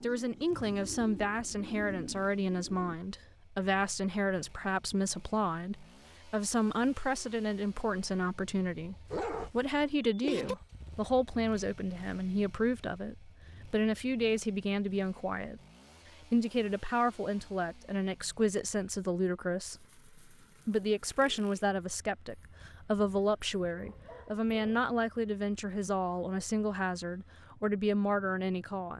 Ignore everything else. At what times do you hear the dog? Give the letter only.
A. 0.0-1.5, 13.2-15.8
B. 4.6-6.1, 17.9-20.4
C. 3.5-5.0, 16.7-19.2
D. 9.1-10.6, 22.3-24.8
D.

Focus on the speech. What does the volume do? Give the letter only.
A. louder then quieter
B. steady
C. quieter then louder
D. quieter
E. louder
B.